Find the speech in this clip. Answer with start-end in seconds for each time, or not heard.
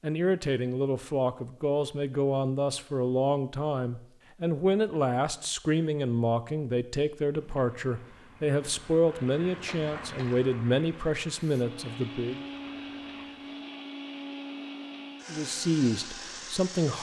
0.0-12.4, 15.2-16.9.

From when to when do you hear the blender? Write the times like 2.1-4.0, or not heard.
11.3-16.9.